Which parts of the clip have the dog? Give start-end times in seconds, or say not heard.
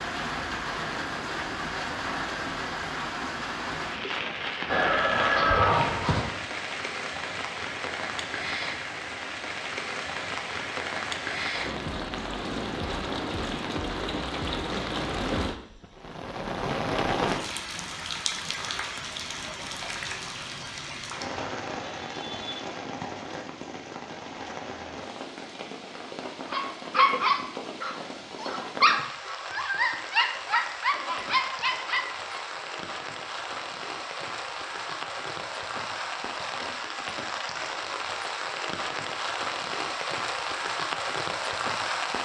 26.5-32.4.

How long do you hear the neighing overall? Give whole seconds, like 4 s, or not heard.
2 s.